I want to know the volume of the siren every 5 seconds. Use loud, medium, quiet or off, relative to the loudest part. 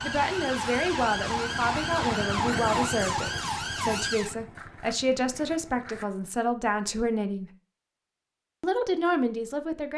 loud, off.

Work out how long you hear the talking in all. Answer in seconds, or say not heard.
9 s.